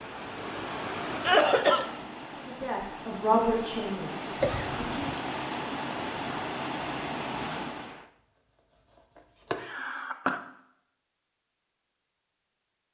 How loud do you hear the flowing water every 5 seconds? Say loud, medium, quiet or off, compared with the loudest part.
loud, loud, off.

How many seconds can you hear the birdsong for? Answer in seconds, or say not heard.
not heard.